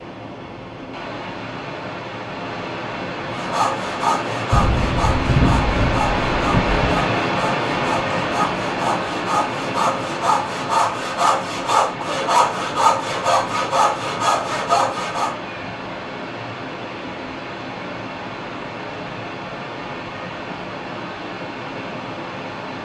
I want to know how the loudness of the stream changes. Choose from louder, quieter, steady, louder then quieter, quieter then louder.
louder then quieter.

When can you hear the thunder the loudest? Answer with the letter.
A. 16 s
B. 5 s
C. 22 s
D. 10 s
B.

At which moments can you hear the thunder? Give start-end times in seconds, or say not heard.
4.5-7.0.